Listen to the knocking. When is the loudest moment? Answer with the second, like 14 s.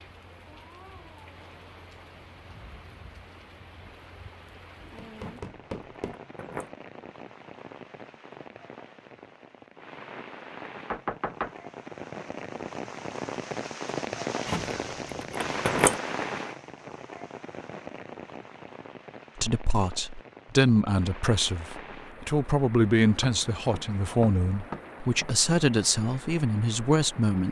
11 s.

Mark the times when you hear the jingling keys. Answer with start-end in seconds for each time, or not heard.
5.2-6.7, 14.4-15.9.